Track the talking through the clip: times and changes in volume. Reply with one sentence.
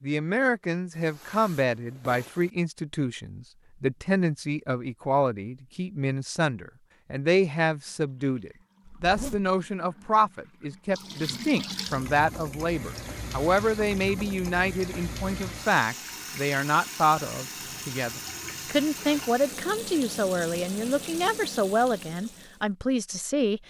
The talking can be heard from 0.0 to 23.6 s, at a steady volume.